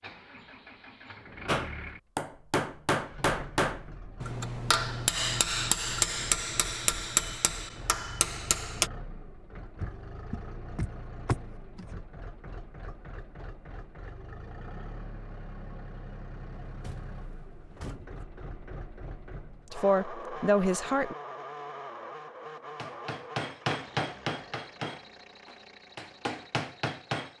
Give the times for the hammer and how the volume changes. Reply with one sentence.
The hammer can be heard from 1.4 to 8.9 s, at a steady volume; and from 22.8 to 27.3 s, getting quieter then louder.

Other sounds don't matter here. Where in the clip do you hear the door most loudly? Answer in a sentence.
The loudest moment of the door is at 11 seconds.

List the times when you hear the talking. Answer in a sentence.
You can hear the talking from 19.7 to 21.1 s.